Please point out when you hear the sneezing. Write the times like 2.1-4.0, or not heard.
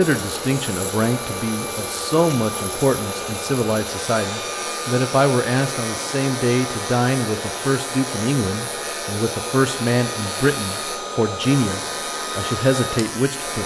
not heard.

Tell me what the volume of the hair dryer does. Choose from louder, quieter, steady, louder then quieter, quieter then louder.
steady.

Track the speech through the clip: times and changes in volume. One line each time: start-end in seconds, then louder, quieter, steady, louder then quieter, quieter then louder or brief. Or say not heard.
0.0-13.6 steady.